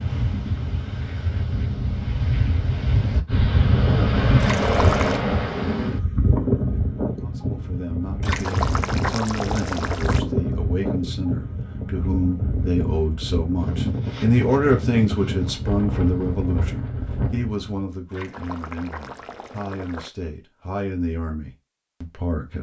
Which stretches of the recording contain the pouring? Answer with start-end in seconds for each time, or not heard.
4.4-5.2, 8.2-10.2, 18.1-20.1.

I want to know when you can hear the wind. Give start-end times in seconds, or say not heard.
0.0-17.9.